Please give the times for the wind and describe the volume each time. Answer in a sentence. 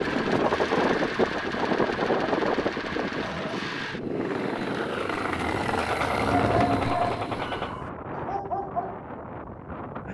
You can hear the wind from 0.0 to 10.0 s, getting quieter.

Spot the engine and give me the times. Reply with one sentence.
The engine can be heard from 0.0 to 7.8 s.